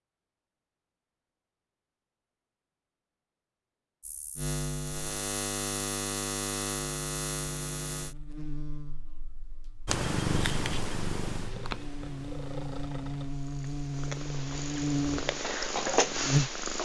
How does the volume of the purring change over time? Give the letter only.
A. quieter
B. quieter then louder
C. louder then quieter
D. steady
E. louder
B.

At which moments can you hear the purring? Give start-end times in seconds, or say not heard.
9.8-16.8.